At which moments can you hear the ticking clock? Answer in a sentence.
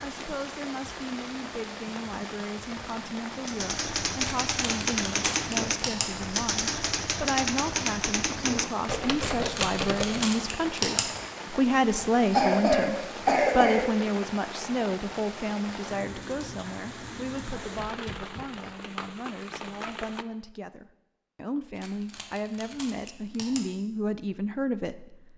You can't hear the ticking clock here.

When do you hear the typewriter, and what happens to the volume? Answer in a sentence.
The typewriter can be heard from 3.5 to 10.3 s, at a steady volume.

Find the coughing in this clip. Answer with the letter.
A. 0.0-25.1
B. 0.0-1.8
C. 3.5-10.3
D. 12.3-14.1
D.